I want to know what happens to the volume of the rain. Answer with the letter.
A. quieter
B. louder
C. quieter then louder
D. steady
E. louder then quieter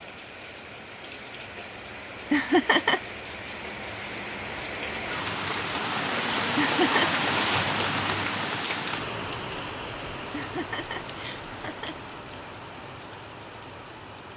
E.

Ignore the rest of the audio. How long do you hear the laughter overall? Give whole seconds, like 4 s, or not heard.
3 s.